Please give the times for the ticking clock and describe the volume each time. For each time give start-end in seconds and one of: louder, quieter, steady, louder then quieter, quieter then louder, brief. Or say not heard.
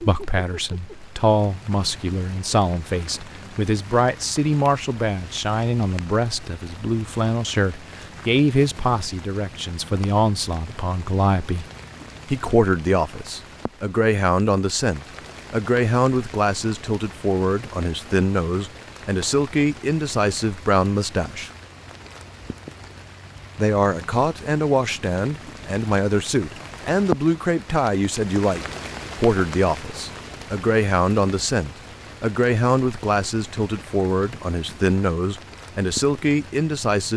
not heard.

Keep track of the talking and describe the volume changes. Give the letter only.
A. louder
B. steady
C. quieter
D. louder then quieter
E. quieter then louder
B.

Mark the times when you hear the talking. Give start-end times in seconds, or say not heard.
0.0-11.7, 12.2-21.5, 23.6-37.1.